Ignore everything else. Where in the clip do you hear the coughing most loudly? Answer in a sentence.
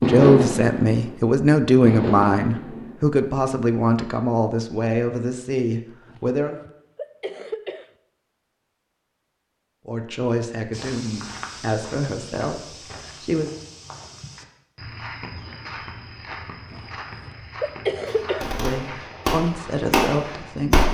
The volume of the coughing peaks at 18 seconds.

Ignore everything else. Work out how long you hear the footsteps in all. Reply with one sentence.
You can hear the footsteps for 10 seconds altogether.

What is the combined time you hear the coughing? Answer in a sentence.
You can hear the coughing for 4 seconds altogether.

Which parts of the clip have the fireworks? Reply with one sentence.
The fireworks can be heard from 0.0 to 3.2 s and from 18.1 to 20.8 s.